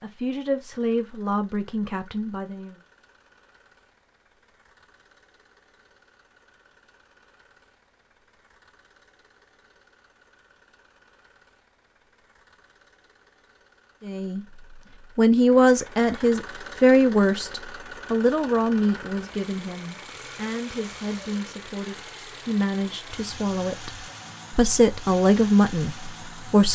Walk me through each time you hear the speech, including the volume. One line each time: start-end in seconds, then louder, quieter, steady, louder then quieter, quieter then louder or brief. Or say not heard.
0.0-2.8 brief
14.0-14.4 brief
15.2-26.7 quieter then louder.